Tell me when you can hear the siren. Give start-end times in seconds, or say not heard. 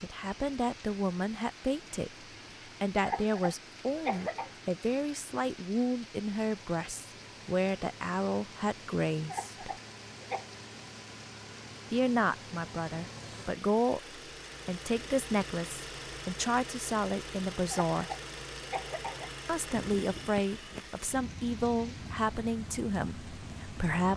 not heard.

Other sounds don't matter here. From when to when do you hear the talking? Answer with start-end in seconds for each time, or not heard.
0.0-2.1, 2.8-9.7, 11.9-18.1, 19.4-24.1.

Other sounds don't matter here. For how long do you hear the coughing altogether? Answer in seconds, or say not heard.
4 s.